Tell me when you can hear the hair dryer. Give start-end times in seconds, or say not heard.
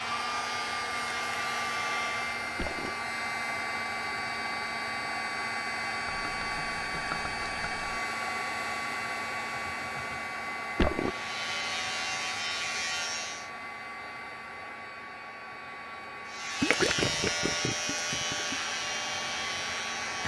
0.0-20.2.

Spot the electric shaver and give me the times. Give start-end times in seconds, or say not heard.
0.0-2.4, 10.9-13.5, 16.2-20.2.